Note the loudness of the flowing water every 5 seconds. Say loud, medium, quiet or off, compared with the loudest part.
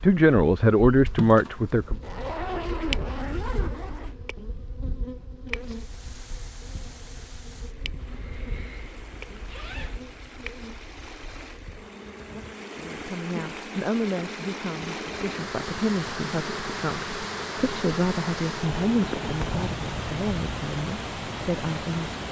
off, quiet, medium, loud, loud.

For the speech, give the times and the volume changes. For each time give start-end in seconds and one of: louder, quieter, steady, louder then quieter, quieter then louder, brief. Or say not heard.
0.0-1.9 brief
12.8-22.1 steady.